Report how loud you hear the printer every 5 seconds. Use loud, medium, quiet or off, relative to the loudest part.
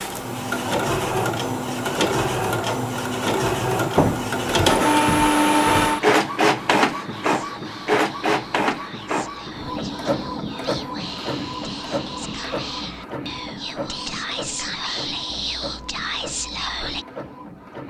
loud, loud, medium, quiet.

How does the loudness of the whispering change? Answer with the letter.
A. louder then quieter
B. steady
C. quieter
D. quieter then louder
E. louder
E.